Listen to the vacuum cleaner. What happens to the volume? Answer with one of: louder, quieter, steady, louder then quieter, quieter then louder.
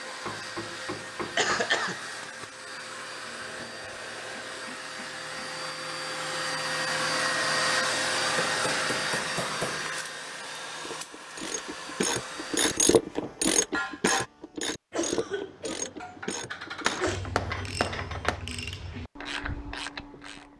louder then quieter.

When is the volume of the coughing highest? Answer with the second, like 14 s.
2 s.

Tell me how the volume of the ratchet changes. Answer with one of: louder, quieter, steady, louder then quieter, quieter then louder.
quieter.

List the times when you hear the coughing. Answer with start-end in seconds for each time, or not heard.
1.4-2.1, 14.9-17.2.